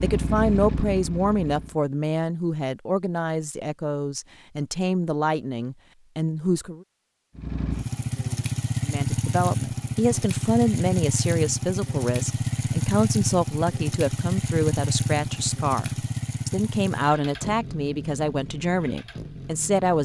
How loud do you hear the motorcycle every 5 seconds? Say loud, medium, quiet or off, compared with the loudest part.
loud, loud, loud, medium.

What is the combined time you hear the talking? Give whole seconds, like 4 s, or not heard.
18 s.